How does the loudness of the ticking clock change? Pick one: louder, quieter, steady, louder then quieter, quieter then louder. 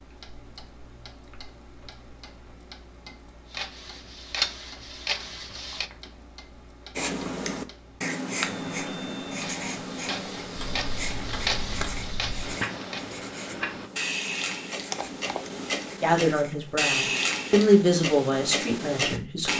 louder.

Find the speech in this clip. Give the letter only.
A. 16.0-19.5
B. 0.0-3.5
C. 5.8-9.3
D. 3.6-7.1
A.